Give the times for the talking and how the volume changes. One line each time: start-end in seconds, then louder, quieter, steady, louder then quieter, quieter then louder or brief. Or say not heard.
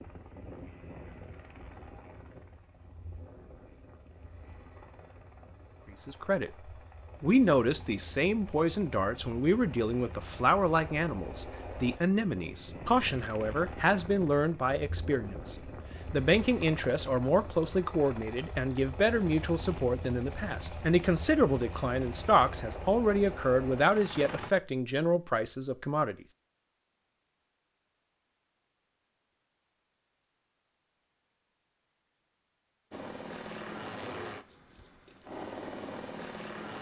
6.0-6.5 brief
7.2-26.1 steady.